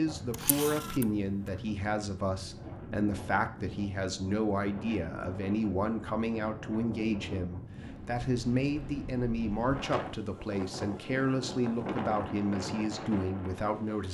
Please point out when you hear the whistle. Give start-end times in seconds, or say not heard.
not heard.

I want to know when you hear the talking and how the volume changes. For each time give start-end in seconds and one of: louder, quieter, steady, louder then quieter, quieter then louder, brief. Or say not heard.
0.0-14.0 steady.